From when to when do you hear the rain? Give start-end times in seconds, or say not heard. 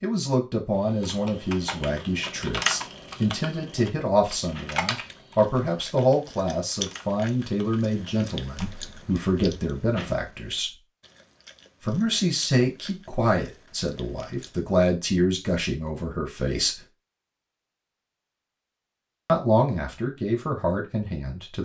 not heard.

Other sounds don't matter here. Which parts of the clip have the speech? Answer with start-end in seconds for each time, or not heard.
0.0-10.8, 11.8-16.9, 19.2-21.5.